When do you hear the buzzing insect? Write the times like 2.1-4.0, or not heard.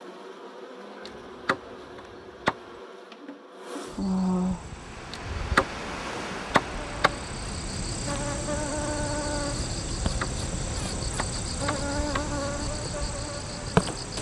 0.0-14.1.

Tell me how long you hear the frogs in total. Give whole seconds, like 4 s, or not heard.
not heard.